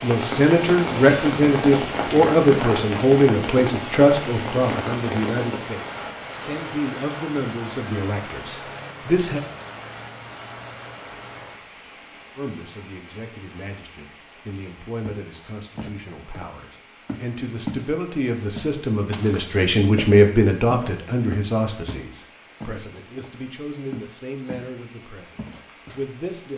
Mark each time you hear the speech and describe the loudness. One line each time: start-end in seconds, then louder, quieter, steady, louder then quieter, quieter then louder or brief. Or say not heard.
0.0-9.4 quieter
12.3-26.5 louder then quieter.